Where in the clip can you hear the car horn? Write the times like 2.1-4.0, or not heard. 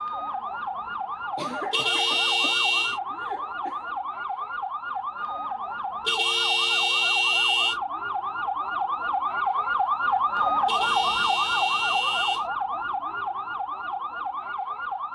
1.7-3.0, 6.0-7.8, 10.7-12.4.